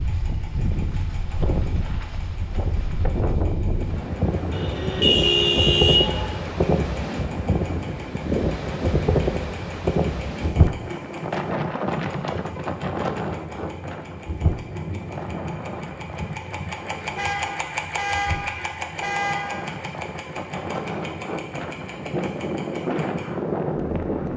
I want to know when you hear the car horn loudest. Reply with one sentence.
The volume of the car horn peaks at 5 seconds.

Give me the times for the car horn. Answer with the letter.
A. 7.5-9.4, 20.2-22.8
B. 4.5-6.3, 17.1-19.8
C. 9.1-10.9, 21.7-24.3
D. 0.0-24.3
B.